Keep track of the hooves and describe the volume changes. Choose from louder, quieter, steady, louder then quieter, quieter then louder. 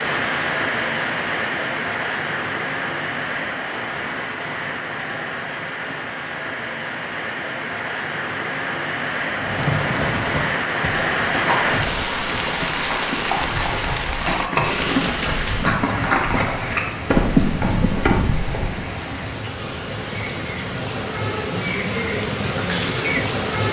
louder.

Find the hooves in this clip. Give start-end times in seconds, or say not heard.
9.3-18.8.